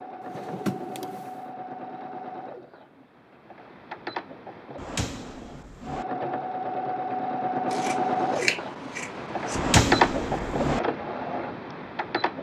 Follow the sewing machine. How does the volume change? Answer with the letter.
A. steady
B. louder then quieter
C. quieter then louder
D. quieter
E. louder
E.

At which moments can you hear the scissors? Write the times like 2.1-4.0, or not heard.
7.7-9.6.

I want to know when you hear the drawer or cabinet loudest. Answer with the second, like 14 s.
10 s.